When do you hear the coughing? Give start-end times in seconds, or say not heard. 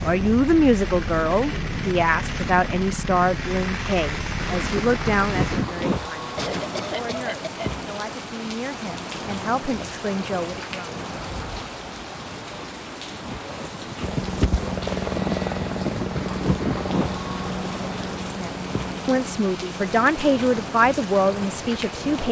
6.3-7.8.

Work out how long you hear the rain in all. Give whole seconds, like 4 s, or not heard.
18 s.